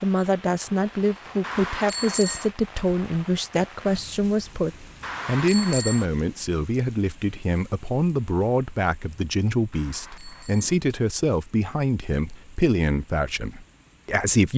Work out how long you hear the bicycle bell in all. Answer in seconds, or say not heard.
3 s.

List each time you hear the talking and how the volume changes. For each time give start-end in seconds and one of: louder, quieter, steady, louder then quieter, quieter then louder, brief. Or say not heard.
0.0-14.5 steady.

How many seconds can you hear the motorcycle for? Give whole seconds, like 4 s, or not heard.
not heard.